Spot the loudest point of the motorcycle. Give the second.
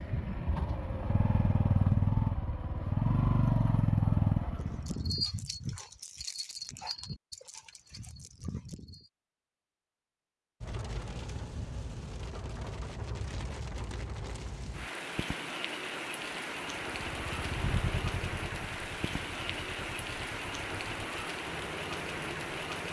4 s.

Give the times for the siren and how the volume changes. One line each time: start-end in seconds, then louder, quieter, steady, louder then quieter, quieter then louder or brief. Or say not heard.
not heard.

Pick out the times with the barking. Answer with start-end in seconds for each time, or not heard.
4.6-9.1.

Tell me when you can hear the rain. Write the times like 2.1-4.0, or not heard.
10.6-22.8.